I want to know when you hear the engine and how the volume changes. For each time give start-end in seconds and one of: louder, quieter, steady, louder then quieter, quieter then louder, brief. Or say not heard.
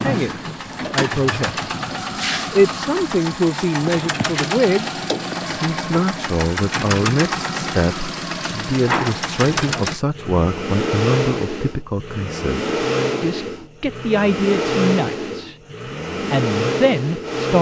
0.0-17.5 steady.